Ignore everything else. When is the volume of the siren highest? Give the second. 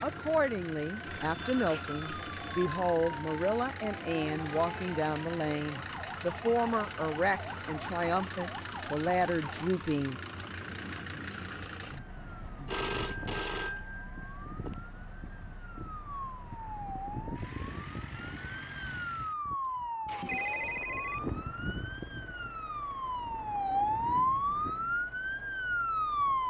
24 s.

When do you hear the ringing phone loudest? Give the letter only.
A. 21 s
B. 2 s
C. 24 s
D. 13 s
D.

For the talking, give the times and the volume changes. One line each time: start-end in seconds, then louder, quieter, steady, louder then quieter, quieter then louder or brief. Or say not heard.
0.0-10.2 steady.